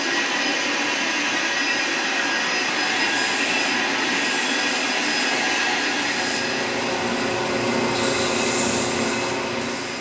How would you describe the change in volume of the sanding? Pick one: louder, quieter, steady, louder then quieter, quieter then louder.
louder.